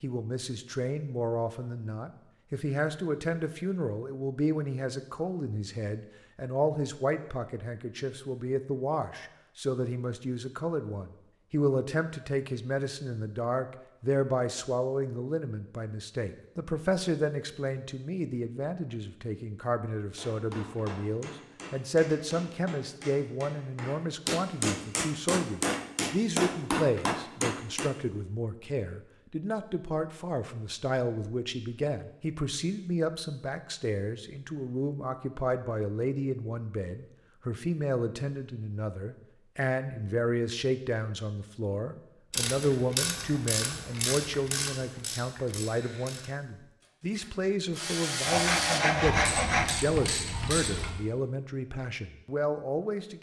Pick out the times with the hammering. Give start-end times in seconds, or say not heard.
20.1-27.9.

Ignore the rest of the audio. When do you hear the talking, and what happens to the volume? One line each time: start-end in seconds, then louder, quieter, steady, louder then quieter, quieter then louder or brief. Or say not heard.
0.0-53.1 steady.